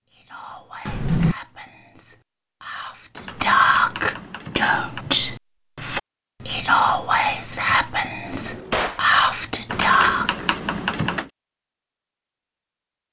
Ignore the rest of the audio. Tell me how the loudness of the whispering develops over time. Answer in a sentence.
The volume of the whispering goes up.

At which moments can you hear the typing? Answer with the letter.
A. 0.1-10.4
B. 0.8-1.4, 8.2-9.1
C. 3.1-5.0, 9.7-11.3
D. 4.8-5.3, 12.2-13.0
C.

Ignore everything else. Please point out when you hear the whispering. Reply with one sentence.
The whispering can be heard from 0.1 to 10.4 s.